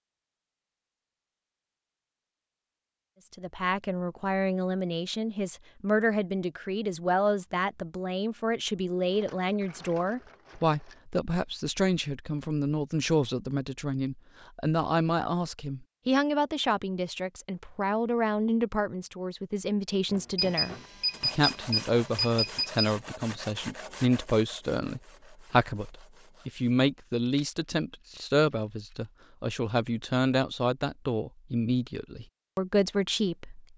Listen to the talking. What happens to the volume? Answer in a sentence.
The loudness of the talking stays about the same.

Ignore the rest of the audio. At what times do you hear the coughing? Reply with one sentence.
You can't hear the coughing here.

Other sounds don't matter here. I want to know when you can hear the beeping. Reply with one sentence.
You can hear the beeping from 20.4 to 22.9 s.